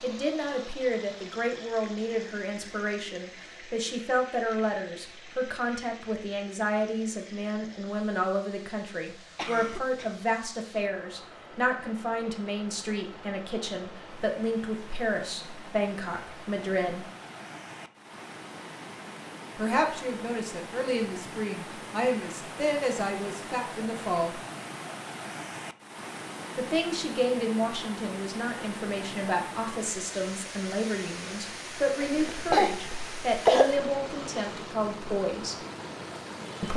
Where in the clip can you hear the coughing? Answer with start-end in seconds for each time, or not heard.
9.3-10.2, 32.0-33.8.